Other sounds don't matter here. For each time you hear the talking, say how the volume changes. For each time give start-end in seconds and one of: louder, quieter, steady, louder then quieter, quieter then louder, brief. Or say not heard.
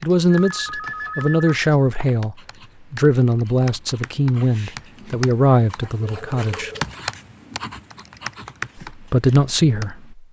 0.0-6.7 steady
8.8-10.2 brief.